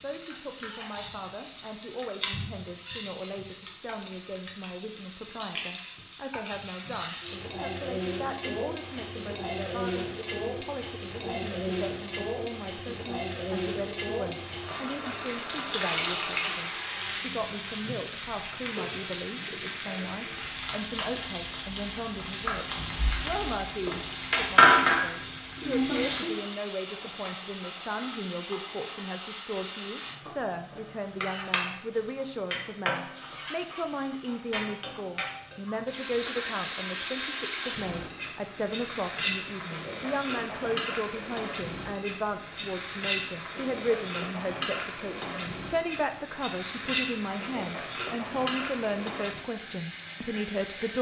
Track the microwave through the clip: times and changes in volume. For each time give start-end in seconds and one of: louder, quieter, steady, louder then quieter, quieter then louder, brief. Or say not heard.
not heard.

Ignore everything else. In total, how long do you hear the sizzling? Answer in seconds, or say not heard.
51 s.